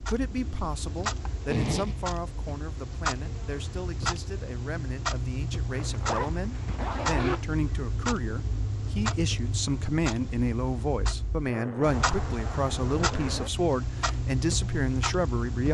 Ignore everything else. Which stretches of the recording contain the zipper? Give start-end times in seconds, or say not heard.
1.4-2.0, 5.7-7.5, 11.4-13.5.